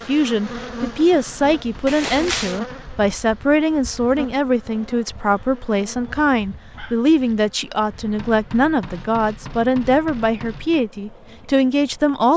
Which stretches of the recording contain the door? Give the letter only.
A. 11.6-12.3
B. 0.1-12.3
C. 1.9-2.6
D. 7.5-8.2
C.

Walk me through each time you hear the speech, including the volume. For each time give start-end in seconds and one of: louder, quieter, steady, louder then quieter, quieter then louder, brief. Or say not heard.
0.1-12.3 steady.